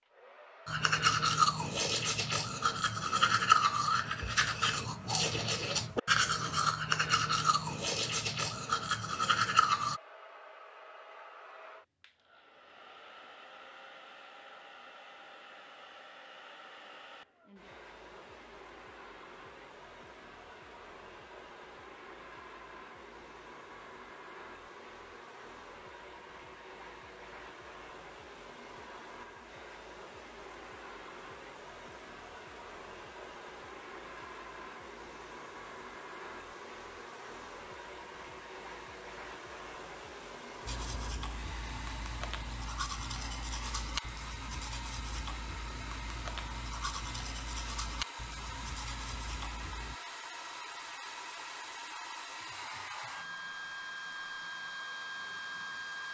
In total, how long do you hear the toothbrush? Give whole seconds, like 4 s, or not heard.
19 s.